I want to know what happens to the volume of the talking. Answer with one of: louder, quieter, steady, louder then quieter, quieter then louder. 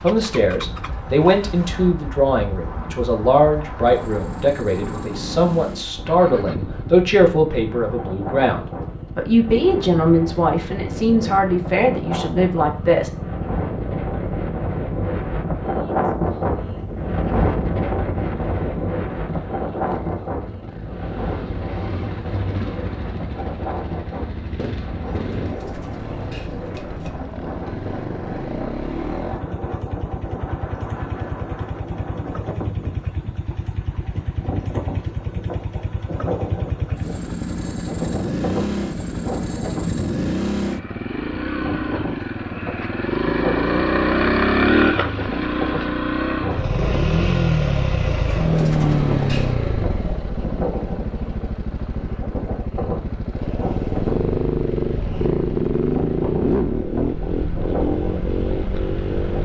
steady.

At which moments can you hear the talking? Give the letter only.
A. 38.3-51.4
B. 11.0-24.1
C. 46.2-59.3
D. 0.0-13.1
D.